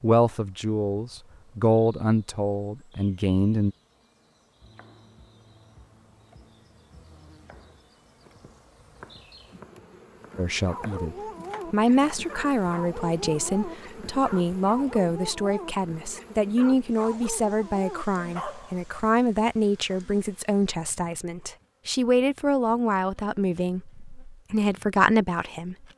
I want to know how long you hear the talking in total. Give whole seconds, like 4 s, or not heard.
19 s.